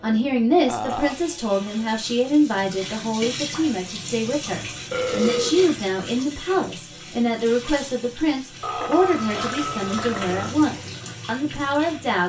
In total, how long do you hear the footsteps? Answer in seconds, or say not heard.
not heard.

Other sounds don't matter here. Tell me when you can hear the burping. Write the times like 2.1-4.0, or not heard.
0.7-1.2, 4.9-5.7, 8.6-10.6.